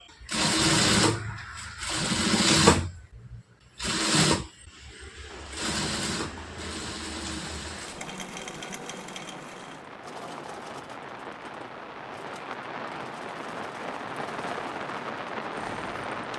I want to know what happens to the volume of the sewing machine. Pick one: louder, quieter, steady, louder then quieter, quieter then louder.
quieter.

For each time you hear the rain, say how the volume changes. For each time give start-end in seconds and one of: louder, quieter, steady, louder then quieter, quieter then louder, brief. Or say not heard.
5.2-16.3 louder.